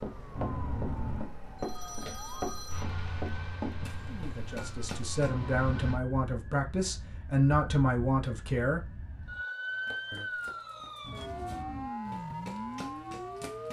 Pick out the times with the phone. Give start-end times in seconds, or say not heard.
0.3-2.9, 5.2-6.0, 11.0-11.9.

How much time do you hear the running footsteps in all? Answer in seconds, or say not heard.
9 s.